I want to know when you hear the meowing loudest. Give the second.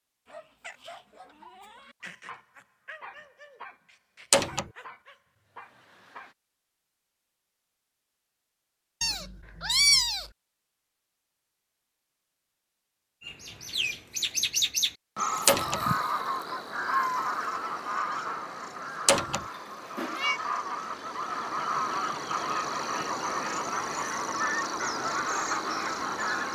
10 s.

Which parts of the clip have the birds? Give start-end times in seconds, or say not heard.
13.2-26.5.